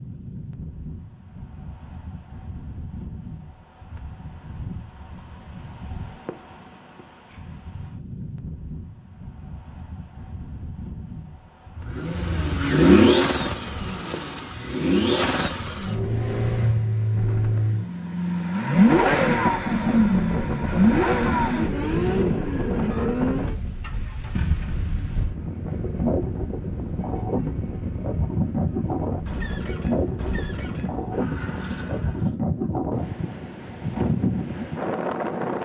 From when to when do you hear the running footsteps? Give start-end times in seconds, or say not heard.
not heard.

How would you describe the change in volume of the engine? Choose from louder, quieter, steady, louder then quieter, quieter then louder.
quieter.